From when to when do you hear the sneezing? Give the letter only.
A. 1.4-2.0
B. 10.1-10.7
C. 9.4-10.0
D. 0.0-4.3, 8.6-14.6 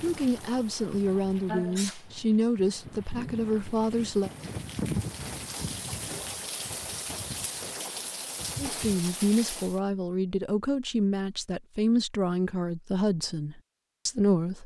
A.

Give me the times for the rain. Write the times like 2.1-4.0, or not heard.
0.0-9.8.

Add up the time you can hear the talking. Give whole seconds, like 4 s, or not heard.
10 s.